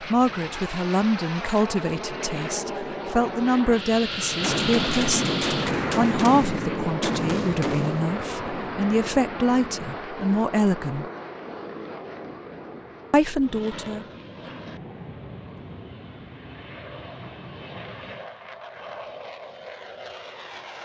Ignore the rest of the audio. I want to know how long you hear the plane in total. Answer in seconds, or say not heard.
21 s.